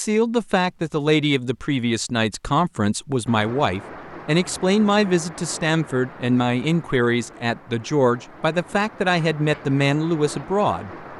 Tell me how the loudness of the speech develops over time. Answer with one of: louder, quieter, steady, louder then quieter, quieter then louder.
steady.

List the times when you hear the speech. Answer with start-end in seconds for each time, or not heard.
0.0-10.9.